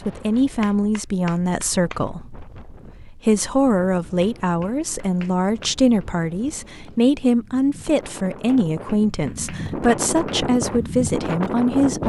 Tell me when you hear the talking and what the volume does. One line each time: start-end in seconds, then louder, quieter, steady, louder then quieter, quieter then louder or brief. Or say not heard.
0.1-12.0 steady.